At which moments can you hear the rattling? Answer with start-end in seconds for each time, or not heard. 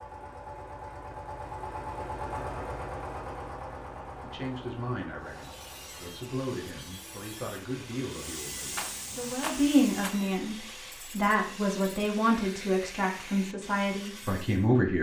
8.7-10.2.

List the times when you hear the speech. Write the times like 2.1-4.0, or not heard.
4.2-14.9.